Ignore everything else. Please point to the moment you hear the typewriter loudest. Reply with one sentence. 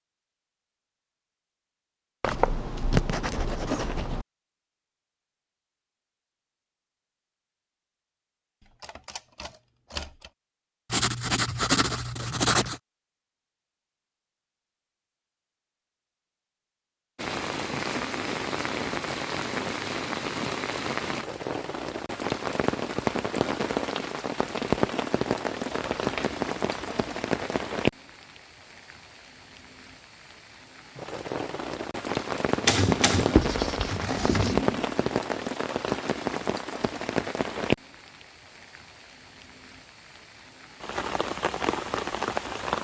The loudest moment of the typewriter is at 33 seconds.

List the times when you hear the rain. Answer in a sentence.
The rain can be heard from 17.1 to 42.8 s.